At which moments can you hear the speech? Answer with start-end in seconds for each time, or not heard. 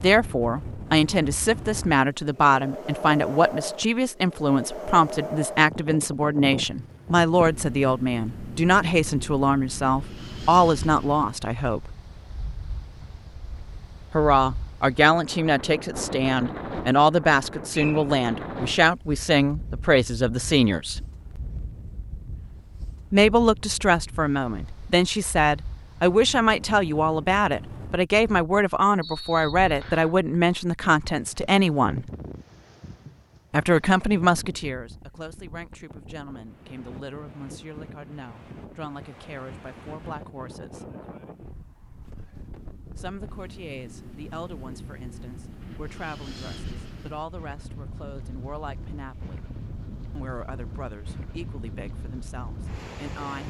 0.0-11.9, 14.1-21.0, 23.1-32.0, 33.5-40.9, 43.0-49.5, 50.1-53.4.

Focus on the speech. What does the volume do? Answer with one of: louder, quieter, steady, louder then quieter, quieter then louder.
quieter.